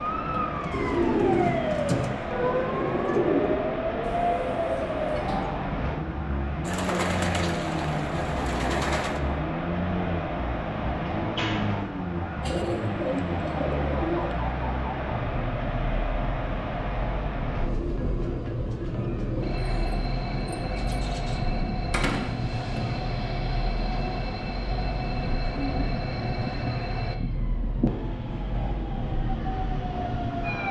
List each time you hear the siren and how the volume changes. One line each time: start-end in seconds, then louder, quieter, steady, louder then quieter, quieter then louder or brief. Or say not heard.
0.0-30.6 quieter.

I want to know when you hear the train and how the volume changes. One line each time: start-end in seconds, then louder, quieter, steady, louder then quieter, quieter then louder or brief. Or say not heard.
0.0-30.6 steady.